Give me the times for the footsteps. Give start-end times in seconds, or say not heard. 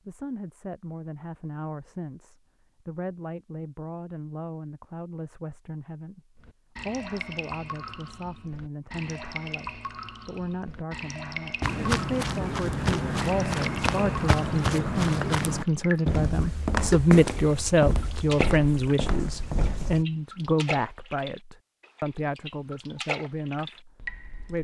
11.6-20.1.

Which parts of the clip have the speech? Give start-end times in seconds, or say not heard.
0.1-24.5.